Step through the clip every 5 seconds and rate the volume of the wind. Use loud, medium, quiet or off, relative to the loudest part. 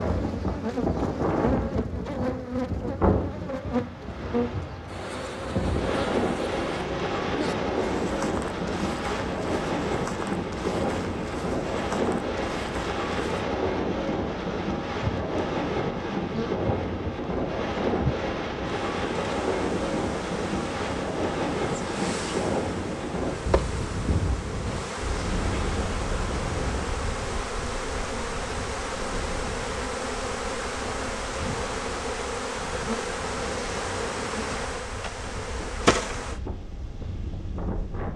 loud, loud, loud, loud, loud, medium, quiet, medium.